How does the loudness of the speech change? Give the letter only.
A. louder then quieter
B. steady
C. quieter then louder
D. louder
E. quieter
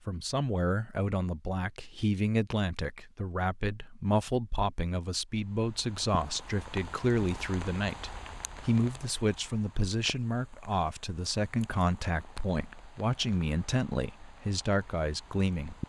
B.